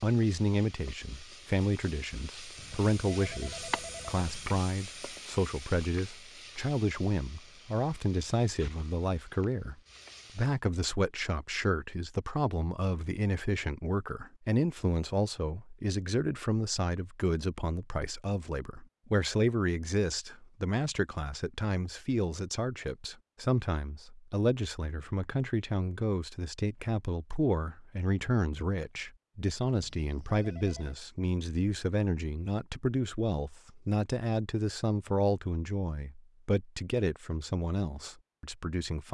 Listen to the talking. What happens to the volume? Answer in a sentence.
The loudness of the talking stays about the same.